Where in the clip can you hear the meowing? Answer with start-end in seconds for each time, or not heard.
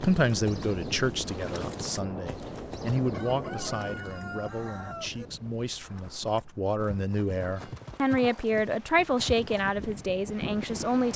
not heard.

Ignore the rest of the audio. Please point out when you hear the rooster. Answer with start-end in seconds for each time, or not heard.
3.1-5.3.